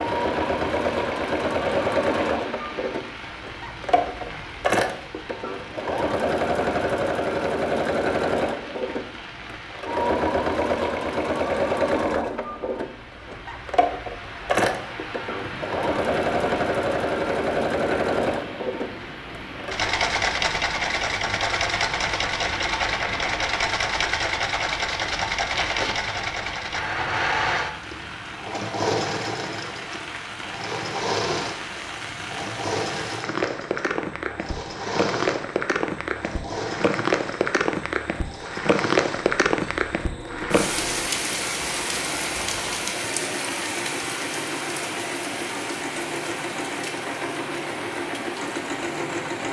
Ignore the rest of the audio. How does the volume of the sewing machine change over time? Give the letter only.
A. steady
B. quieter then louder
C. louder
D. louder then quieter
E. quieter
E.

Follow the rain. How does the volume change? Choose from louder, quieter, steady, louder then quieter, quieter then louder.
louder.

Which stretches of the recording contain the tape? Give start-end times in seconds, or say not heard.
25.5-25.9.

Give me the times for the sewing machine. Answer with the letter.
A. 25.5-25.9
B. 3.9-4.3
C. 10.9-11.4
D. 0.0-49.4
D.